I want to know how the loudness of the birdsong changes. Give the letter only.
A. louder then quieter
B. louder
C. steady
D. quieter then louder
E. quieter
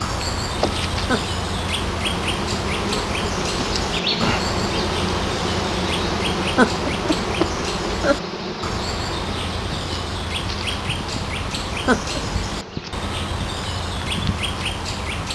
C.